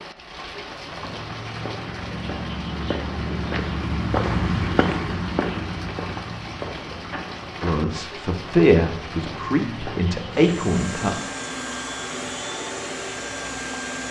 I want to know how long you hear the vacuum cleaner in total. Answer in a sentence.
You can hear the vacuum cleaner for 4 seconds altogether.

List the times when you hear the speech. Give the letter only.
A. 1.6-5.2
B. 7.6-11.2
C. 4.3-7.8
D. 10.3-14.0
B.